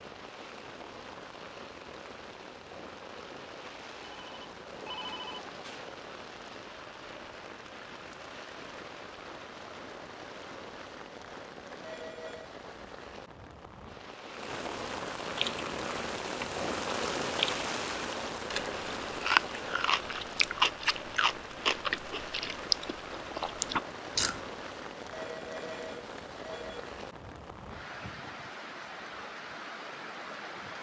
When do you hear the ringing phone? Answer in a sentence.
The ringing phone can be heard from 4.0 to 5.9 s, from 11.8 to 12.6 s and from 25.1 to 26.9 s.